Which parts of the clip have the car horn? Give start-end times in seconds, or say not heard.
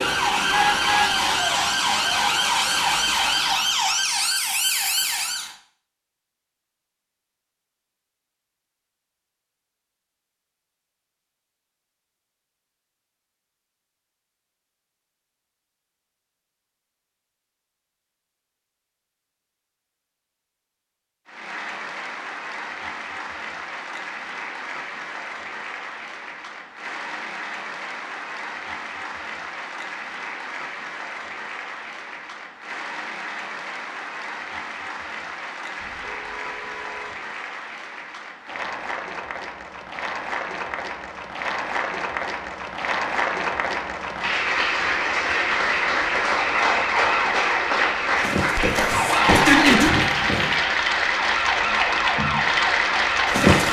0.5-1.2, 35.8-37.2.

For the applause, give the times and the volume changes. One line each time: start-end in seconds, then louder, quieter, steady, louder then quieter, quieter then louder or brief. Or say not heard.
21.2-53.6 louder.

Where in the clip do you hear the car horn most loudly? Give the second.
1 s.